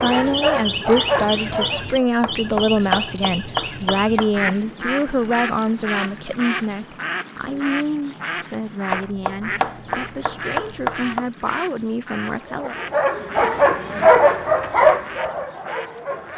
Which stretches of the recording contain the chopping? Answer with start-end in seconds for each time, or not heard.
2.2-4.5, 8.9-11.2.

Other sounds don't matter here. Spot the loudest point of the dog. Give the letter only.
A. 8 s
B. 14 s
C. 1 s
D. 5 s
B.